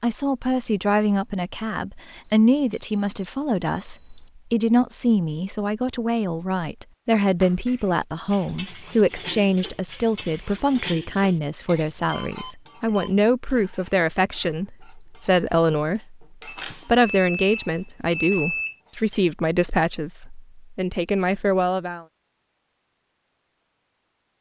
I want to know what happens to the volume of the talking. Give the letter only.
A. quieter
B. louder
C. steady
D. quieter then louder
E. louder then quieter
C.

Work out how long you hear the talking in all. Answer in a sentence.
The talking can be heard for 22 seconds in total.